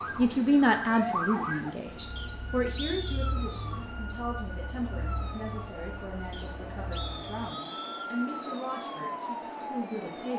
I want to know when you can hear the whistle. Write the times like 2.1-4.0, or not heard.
2.1-3.4, 6.3-8.1.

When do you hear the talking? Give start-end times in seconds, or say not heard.
0.1-10.3.